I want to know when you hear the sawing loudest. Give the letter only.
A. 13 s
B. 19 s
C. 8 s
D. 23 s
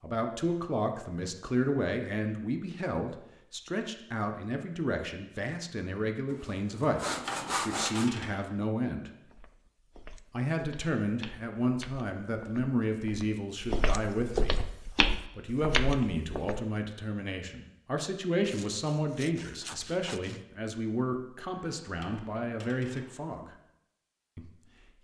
C.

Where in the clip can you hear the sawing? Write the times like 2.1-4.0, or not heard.
6.3-8.1, 18.4-20.4.